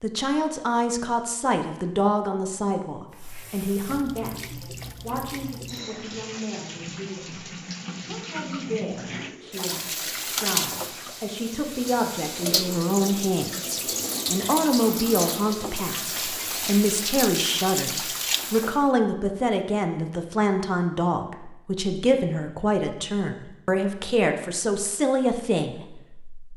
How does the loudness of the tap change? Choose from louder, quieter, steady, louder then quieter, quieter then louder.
louder.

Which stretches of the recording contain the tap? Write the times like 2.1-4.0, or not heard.
3.1-18.9.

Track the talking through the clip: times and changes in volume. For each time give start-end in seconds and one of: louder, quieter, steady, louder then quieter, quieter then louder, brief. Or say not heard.
0.0-26.4 quieter then louder.